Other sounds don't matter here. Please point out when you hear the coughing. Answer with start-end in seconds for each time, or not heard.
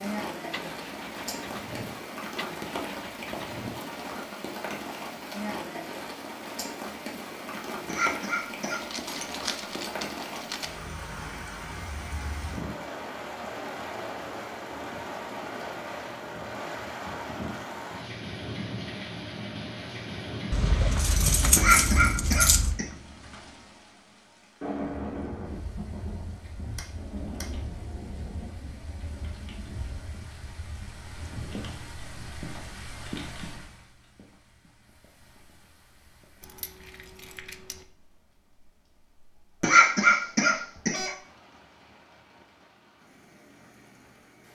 7.8-8.8, 21.6-22.9, 39.6-41.1.